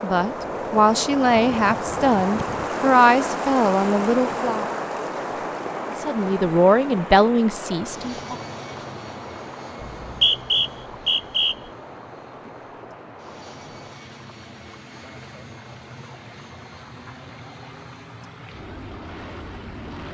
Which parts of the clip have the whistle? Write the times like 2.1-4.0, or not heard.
9.9-11.6.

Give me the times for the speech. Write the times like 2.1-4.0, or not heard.
0.0-4.7, 6.0-8.3.